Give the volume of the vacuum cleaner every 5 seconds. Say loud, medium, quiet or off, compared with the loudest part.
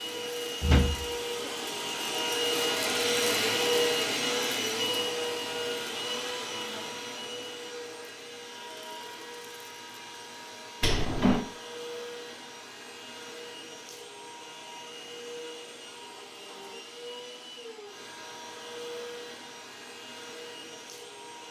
loud, medium, quiet, quiet, quiet.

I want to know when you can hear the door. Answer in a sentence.
The door can be heard from 0.6 to 1.5 s and from 10.8 to 11.4 s.